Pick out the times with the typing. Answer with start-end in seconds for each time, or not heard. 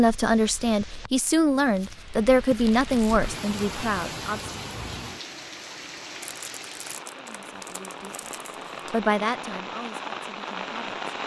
not heard.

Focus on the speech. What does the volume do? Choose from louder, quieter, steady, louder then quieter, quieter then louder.
quieter.